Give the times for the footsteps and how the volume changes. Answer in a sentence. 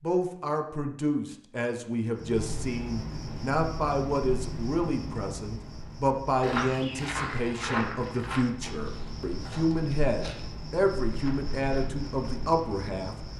You can hear the footsteps from 6.4 to 12.3 s, getting quieter.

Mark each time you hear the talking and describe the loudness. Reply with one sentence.
The talking can be heard from 0.0 to 13.2 s, at a steady volume.